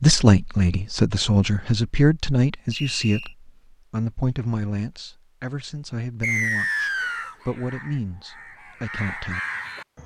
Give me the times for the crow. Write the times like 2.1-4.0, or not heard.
6.6-10.0.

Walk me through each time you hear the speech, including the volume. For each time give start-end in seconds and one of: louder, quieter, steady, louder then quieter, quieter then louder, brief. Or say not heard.
0.0-9.4 quieter.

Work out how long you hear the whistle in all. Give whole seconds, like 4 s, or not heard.
2 s.